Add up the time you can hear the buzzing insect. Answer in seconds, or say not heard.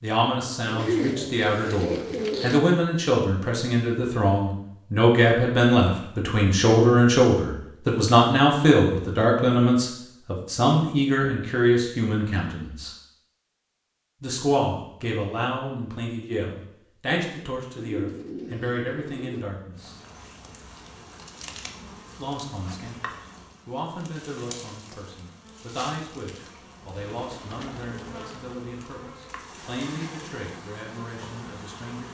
12 s.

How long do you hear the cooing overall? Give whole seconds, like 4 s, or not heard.
5 s.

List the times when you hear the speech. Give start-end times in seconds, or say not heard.
0.0-12.9, 14.2-19.9, 22.1-32.0.